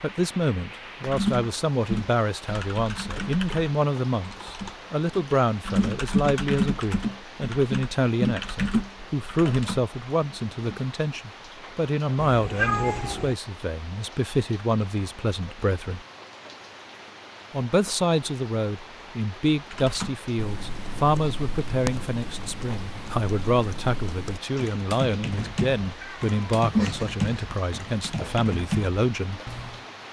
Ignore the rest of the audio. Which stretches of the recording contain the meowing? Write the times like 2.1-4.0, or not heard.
12.2-13.3, 25.9-27.4.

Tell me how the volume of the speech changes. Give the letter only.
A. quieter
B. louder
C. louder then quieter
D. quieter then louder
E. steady
E.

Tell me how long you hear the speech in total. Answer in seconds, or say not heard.
28 s.